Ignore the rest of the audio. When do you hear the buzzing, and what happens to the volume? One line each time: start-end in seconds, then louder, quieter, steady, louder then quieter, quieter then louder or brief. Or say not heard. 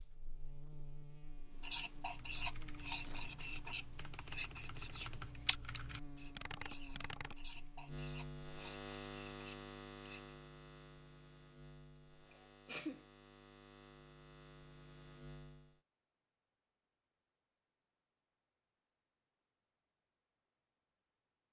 0.0-15.8 louder then quieter.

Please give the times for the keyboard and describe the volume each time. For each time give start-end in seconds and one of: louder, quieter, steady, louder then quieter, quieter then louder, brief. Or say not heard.
2.0-7.7 louder.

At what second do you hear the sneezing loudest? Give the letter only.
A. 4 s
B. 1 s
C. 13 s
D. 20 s
C.